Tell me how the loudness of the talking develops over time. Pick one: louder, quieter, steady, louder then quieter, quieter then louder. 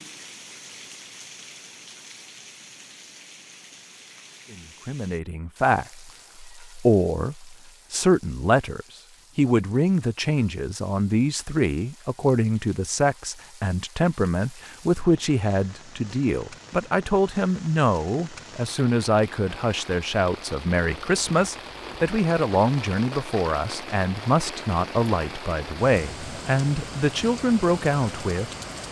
steady.